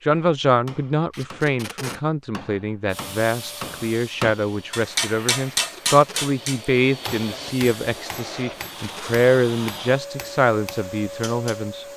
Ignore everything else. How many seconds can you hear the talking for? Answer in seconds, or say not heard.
12 s.